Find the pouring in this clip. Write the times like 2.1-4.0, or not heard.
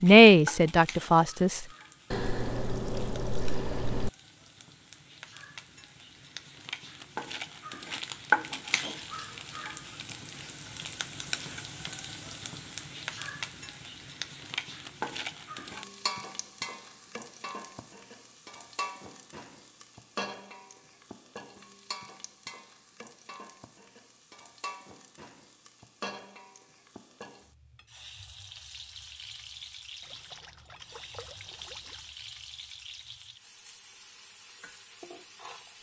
2.1-4.1, 30.0-32.0.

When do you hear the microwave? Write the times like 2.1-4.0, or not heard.
not heard.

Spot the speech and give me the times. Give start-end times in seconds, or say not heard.
0.0-1.6.